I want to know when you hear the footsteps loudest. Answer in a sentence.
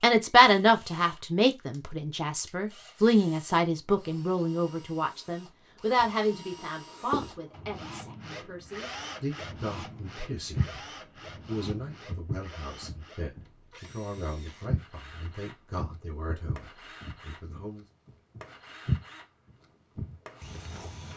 The loudest moment of the footsteps is at 19 seconds.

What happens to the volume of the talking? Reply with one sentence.
The loudness of the talking goes down.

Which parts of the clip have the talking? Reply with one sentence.
You can hear the talking from 0.0 to 10.8 s and from 11.4 to 17.9 s.